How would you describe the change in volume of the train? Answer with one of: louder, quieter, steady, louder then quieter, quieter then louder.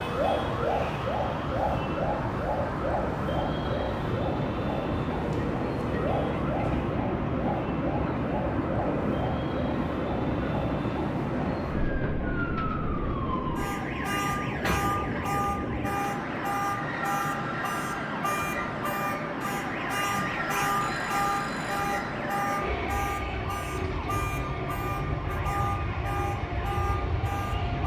steady.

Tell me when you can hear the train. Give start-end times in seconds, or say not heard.
0.0-27.8.